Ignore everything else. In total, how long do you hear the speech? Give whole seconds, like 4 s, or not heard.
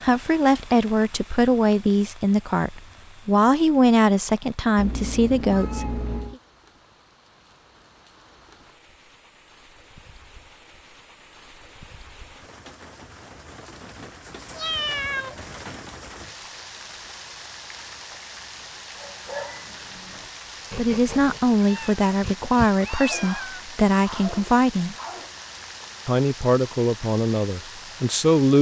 13 s.